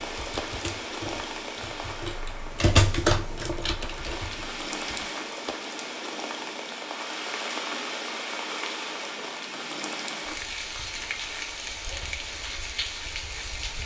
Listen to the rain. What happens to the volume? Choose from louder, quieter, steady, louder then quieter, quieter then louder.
steady.